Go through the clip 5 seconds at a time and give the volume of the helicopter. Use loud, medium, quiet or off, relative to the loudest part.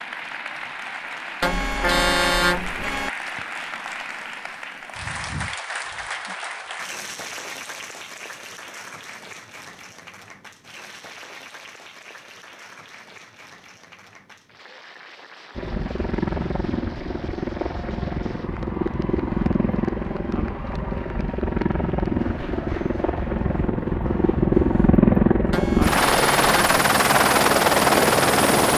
off, off, off, medium, medium, loud.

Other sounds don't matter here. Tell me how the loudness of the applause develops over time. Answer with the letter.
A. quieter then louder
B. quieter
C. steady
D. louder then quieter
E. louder
B.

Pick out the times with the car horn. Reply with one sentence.
The car horn can be heard from 1.4 to 3.1 s and from 25.5 to 26.8 s.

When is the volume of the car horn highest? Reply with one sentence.
The volume of the car horn peaks at 2 seconds.